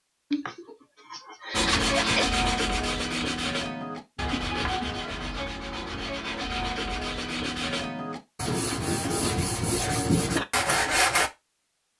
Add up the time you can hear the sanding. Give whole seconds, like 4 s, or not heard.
10 s.